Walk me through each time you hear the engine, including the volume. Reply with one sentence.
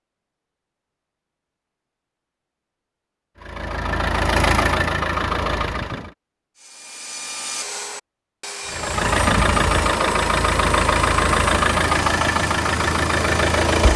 You can hear the engine briefly from 3.4 to 6.2 s; and from 8.7 to 13.9 s, at a steady volume.